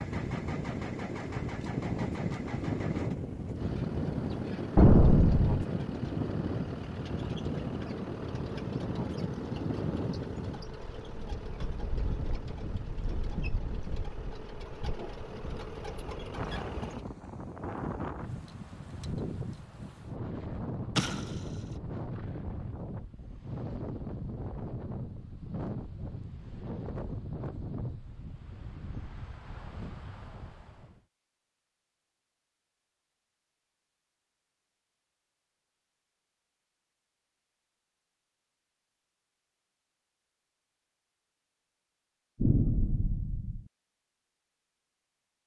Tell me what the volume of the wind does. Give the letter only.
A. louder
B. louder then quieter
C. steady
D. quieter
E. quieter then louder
D.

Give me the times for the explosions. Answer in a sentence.
You can hear the explosions from 4.8 to 5.7 s, from 20.9 to 21.5 s and from 42.4 to 43.6 s.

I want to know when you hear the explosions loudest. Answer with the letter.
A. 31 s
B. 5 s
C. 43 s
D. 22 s
B.